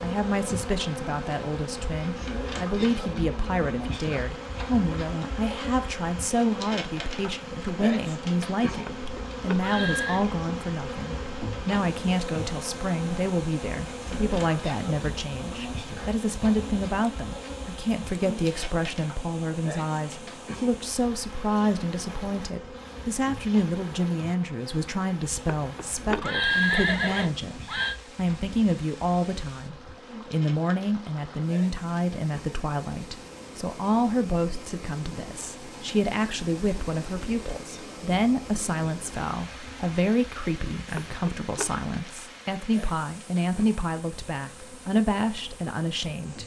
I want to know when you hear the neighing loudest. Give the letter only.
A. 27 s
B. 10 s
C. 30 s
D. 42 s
A.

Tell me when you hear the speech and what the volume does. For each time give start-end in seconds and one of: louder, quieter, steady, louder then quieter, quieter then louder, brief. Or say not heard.
0.0-46.4 steady.